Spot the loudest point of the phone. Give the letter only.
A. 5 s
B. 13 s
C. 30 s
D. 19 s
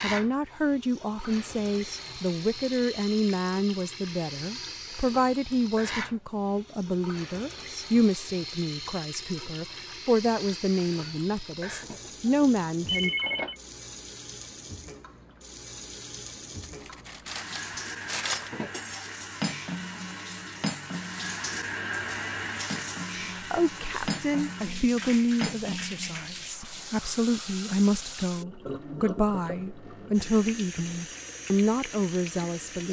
B.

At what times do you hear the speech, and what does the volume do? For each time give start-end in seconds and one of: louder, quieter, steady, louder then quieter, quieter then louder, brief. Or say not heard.
0.0-13.1 steady
23.4-32.8 quieter then louder.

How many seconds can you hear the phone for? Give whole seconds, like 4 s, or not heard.
2 s.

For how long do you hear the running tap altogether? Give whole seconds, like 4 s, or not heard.
33 s.